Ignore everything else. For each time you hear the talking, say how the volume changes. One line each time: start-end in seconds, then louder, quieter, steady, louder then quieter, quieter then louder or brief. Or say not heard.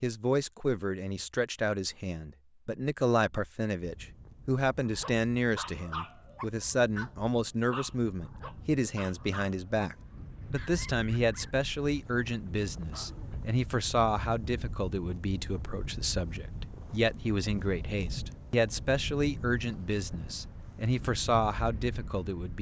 0.0-22.5 steady.